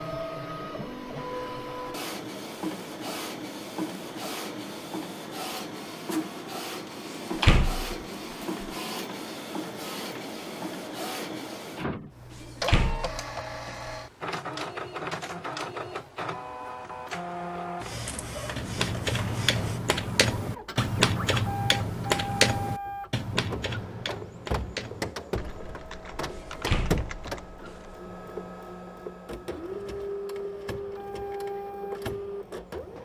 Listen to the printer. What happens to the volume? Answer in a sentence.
The volume of the printer stays about the same.